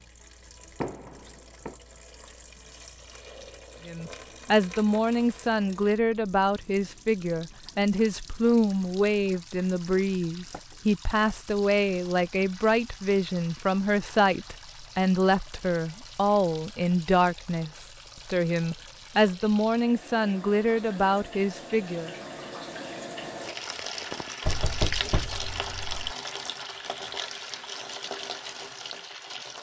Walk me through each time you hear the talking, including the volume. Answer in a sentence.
You can hear the talking from 3.9 to 22.1 s, at a steady volume.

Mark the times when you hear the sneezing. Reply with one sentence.
The sneezing can't be heard in this clip.